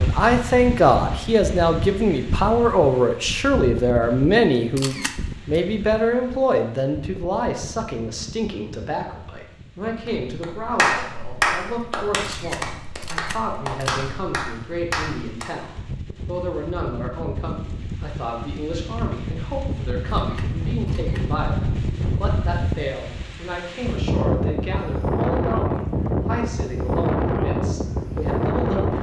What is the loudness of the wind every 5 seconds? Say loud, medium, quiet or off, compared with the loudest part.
medium, quiet, quiet, medium, loud, loud.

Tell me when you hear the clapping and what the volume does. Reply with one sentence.
You can hear the clapping from 10.3 to 15.7 s, getting quieter.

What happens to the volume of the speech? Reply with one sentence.
The loudness of the speech goes down.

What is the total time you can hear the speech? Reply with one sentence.
The speech can be heard for 29 seconds in total.